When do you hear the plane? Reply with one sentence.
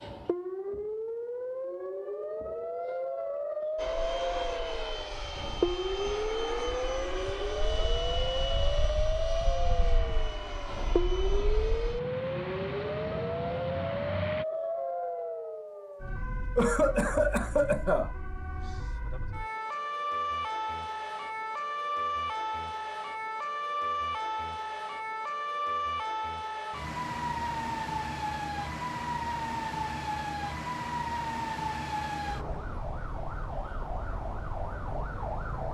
The plane can be heard from 3.8 to 14.4 s.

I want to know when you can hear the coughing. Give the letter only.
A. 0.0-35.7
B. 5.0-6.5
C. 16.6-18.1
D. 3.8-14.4
C.